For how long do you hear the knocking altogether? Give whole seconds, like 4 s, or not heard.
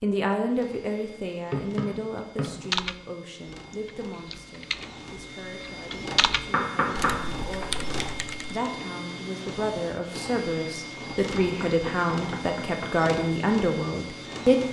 4 s.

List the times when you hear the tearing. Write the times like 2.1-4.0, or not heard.
not heard.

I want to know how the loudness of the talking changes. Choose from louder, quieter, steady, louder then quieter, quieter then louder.
quieter then louder.